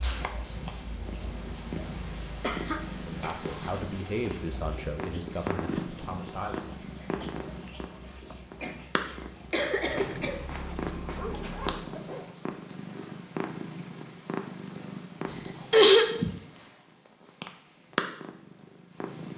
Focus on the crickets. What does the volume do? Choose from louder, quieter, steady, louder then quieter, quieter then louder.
steady.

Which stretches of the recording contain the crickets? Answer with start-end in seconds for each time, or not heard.
0.0-13.5.